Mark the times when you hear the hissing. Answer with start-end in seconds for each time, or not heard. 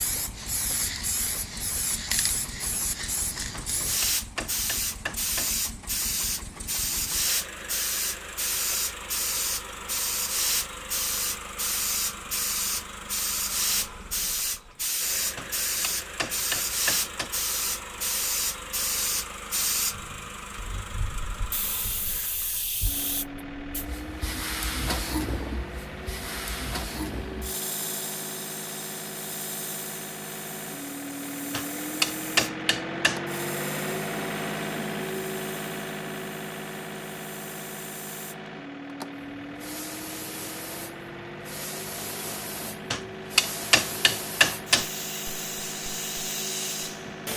0.0-47.3.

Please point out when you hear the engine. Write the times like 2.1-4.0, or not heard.
0.0-47.3.